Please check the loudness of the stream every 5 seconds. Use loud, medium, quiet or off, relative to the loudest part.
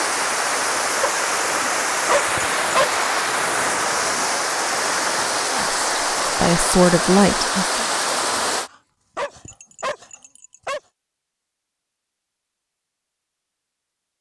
loud, loud, off.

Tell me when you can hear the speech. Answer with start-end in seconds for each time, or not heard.
5.5-7.8.